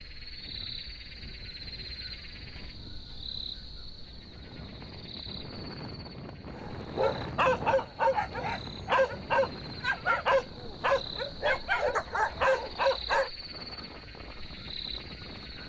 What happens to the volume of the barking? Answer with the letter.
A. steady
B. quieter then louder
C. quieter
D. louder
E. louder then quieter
A.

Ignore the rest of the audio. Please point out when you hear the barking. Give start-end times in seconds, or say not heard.
6.5-13.3.